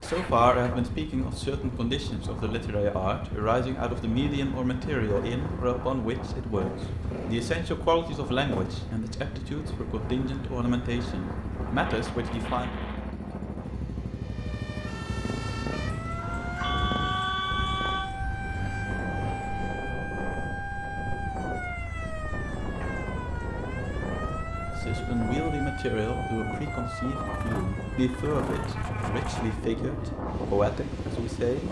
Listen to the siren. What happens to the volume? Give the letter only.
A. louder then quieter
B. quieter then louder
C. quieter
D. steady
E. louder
D.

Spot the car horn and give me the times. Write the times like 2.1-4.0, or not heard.
16.1-18.1.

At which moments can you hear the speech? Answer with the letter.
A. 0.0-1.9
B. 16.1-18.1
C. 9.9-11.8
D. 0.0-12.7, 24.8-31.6
D.